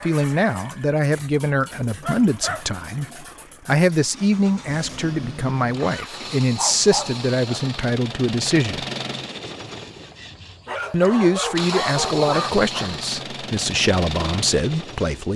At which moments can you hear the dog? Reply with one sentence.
The dog can be heard from 1.1 to 2.6 s, from 6.5 to 7.2 s and from 10.7 to 12.9 s.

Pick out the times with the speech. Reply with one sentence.
The speech can be heard from 0.0 to 8.8 s and from 10.9 to 15.3 s.